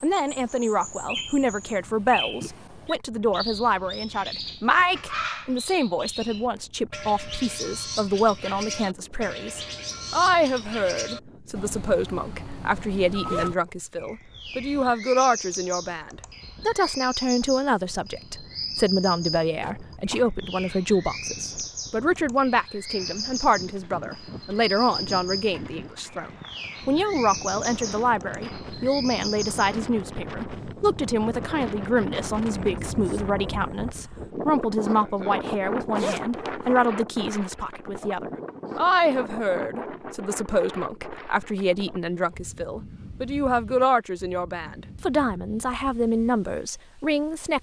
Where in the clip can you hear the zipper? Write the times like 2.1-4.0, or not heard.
12.8-13.6, 19.6-20.2, 35.5-36.8.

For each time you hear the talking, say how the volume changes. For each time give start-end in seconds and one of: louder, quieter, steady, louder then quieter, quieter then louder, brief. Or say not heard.
0.0-47.5 steady.